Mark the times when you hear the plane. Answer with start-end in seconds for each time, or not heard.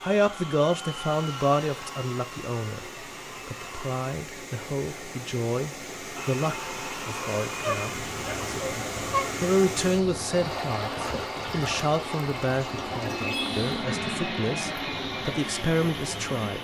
0.0-4.2, 6.2-16.5.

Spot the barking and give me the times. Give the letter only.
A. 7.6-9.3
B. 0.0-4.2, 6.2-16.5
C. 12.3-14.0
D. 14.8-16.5
A.